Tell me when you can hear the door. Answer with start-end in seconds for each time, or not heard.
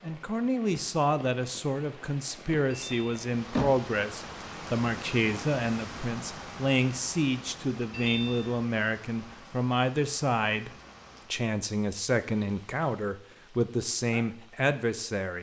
2.7-3.9, 7.9-8.6.